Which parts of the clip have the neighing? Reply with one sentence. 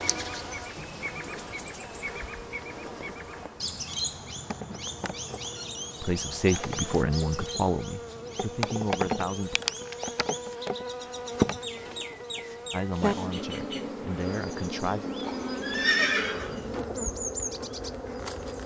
The neighing can be heard from 15.6 to 16.8 s.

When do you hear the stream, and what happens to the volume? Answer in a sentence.
The stream can't be heard in this clip.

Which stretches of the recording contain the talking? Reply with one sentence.
You can hear the talking from 6.0 to 9.6 s and from 12.7 to 15.1 s.